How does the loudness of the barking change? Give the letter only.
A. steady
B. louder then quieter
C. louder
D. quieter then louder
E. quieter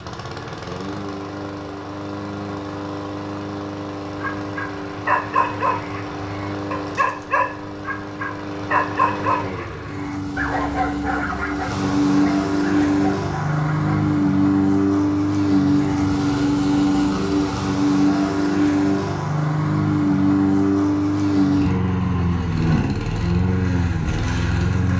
E.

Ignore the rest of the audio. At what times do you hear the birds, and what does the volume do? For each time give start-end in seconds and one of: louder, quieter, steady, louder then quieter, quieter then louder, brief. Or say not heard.
not heard.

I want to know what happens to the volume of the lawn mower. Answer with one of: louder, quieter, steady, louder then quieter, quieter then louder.
louder.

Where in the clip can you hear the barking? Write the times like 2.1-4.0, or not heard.
4.2-14.1.